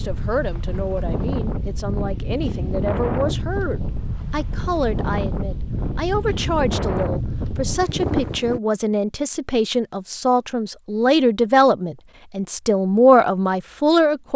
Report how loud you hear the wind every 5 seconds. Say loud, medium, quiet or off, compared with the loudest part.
loud, loud, off.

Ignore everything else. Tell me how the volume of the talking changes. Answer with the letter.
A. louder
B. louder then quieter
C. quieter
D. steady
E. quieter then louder
A.